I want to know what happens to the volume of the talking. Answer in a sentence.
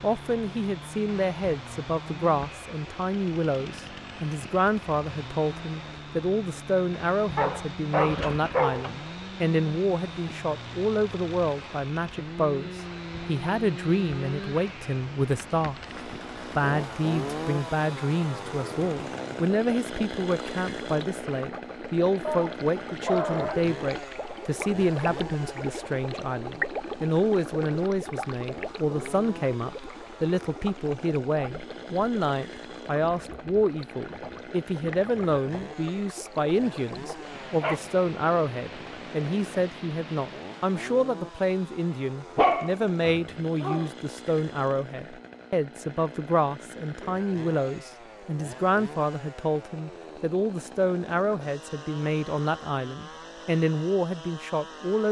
The volume of the talking stays about the same.